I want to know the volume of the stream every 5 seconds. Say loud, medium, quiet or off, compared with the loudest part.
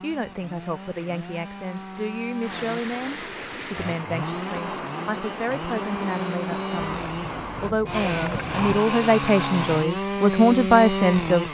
loud, loud, off.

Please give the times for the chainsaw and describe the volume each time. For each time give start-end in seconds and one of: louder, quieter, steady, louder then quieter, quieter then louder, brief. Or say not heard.
0.0-11.4 louder.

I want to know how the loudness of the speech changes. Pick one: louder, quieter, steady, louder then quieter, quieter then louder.
louder.